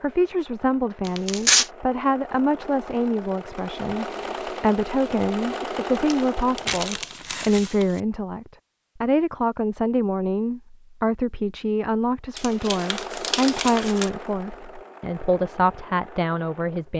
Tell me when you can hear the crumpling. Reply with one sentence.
You can hear the crumpling from 1.1 to 1.7 s, from 6.1 to 8.0 s and from 12.3 to 14.1 s.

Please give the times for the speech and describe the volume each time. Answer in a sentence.
You can hear the speech from 0.0 to 16.9 s, at a steady volume.